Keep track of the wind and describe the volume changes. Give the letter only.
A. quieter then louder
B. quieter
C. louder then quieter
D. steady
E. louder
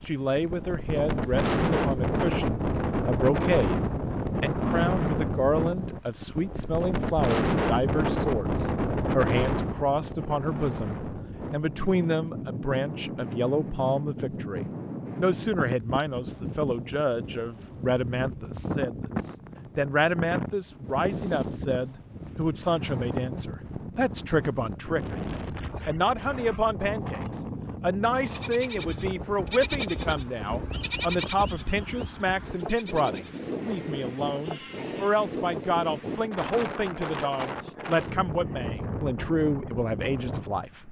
B.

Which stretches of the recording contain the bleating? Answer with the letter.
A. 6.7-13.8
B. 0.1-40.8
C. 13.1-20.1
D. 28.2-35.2
D.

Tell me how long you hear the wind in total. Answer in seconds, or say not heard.
41 s.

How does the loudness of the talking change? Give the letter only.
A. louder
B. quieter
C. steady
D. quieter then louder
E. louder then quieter
C.